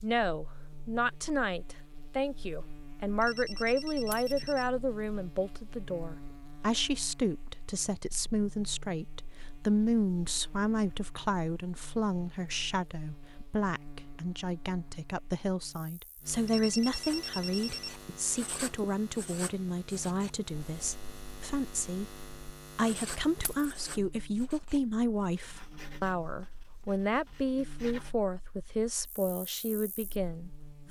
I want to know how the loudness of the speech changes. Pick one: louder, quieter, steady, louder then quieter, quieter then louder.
steady.